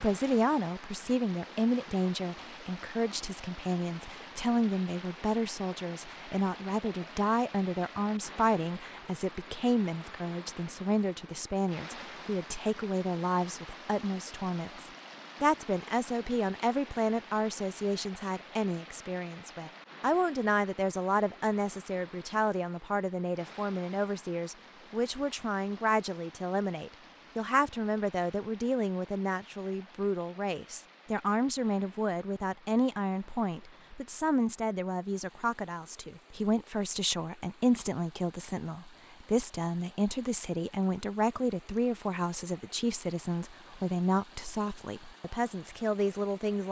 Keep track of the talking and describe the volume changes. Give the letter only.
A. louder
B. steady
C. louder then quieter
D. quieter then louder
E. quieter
B.